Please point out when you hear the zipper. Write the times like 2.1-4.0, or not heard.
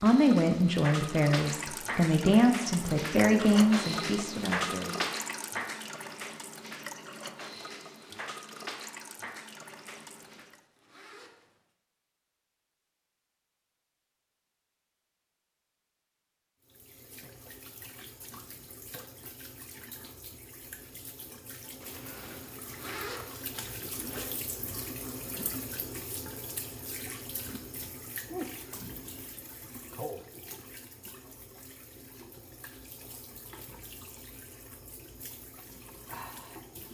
10.1-11.7, 21.8-24.4.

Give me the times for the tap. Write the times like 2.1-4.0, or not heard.
0.0-10.6, 16.6-36.8.